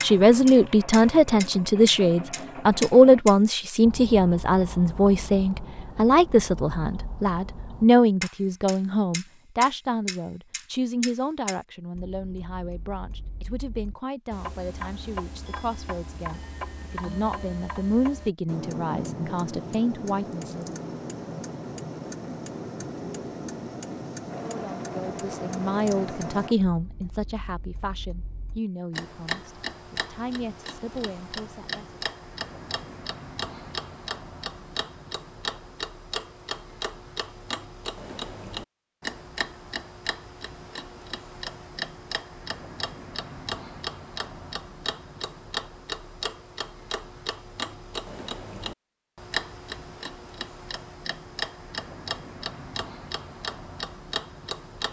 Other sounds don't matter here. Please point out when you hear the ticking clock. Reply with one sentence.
The ticking clock can be heard from 0.0 to 54.8 s.